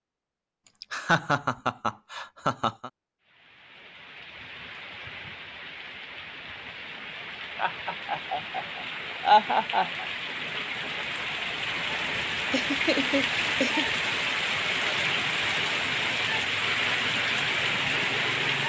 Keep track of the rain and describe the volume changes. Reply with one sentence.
The volume of the rain goes up.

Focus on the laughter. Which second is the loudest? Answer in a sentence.
The loudest moment of the laughter is at 9 seconds.